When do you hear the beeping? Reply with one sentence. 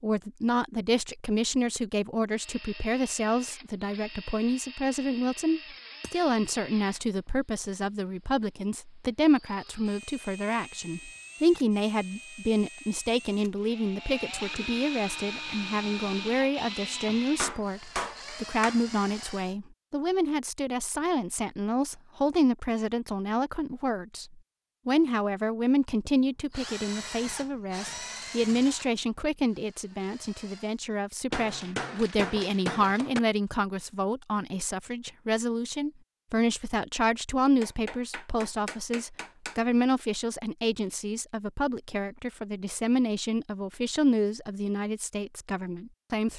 The beeping can't be heard in this clip.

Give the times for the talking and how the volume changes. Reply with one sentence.
You can hear the talking from 0.0 to 46.3 s, at a steady volume.